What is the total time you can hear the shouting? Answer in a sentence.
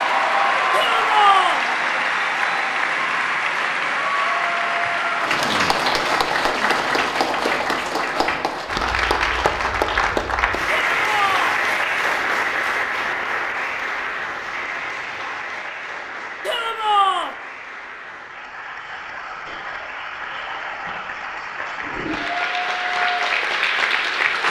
You can hear the shouting for 3 seconds altogether.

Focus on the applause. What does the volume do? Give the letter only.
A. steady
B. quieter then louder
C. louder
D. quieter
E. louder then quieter
B.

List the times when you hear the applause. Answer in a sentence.
You can hear the applause from 0.0 to 24.4 s.